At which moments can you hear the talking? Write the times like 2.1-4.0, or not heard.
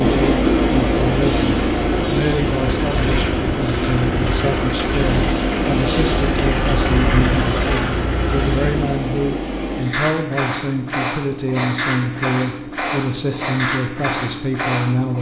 0.0-15.1.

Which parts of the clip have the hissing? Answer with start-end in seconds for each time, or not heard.
0.0-15.1.